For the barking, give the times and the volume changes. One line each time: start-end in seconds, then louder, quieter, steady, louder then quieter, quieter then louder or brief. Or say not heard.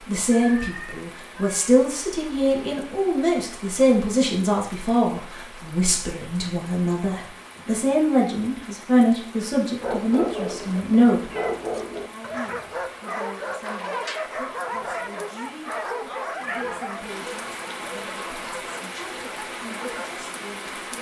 9.8-20.2 quieter.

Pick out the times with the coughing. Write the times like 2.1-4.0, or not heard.
not heard.